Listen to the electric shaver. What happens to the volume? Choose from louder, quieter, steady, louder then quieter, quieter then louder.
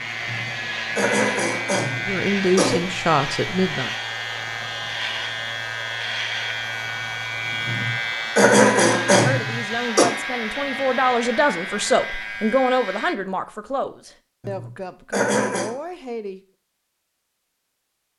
steady.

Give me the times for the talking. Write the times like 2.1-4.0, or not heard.
2.0-3.9, 9.2-16.4.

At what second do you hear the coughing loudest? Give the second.
9 s.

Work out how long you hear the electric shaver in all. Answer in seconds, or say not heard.
13 s.